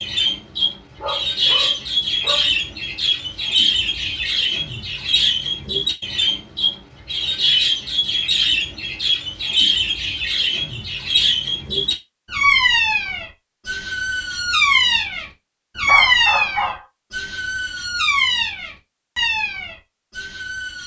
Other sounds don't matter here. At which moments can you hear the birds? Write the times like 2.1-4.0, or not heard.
0.0-20.8.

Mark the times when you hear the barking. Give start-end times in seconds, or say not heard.
0.9-2.5, 15.8-16.9.